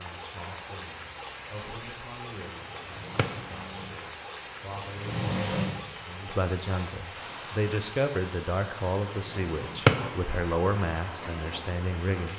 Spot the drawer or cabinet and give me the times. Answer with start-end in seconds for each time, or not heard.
2.6-3.4, 9.2-10.1.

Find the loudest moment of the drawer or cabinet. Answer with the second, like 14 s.
10 s.